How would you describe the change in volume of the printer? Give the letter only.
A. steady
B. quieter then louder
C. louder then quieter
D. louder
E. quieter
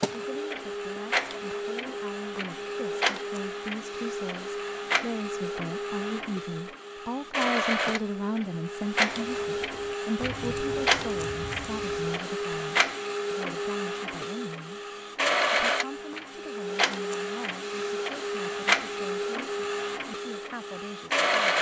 A.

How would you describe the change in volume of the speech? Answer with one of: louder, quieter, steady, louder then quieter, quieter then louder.
louder then quieter.